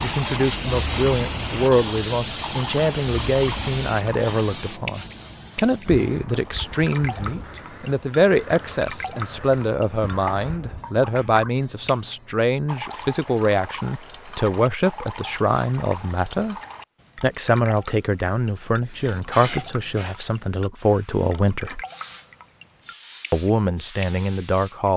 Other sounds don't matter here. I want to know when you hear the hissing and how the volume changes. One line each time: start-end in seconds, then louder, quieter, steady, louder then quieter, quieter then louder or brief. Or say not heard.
0.0-12.4 quieter
18.9-24.8 quieter then louder.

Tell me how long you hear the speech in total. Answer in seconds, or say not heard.
23 s.